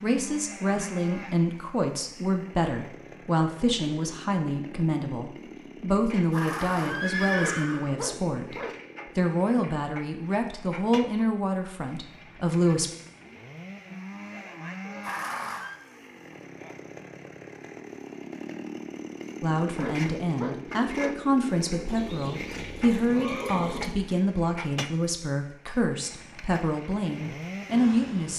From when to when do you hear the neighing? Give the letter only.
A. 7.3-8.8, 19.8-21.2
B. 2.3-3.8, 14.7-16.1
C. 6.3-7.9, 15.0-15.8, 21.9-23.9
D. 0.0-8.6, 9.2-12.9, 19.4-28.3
C.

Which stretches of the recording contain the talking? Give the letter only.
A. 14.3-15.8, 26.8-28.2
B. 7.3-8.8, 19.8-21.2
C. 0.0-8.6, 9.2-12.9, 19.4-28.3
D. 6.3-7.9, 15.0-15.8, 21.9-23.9
C.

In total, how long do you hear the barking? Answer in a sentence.
You can hear the barking for 3 seconds altogether.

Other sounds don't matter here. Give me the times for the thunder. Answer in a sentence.
The thunder can't be heard in this clip.